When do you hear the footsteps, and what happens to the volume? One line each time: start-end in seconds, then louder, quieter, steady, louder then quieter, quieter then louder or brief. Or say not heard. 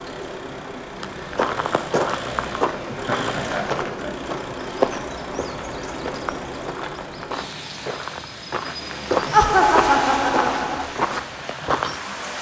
0.9-12.0 quieter then louder.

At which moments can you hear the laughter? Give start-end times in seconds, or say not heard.
2.9-4.3, 9.3-10.8.